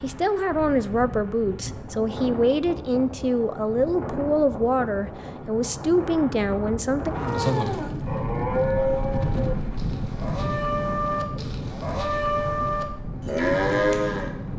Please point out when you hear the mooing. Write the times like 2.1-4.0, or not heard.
7.2-14.3.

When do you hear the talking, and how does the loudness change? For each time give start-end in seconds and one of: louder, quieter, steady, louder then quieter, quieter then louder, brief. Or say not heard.
0.0-7.2 steady.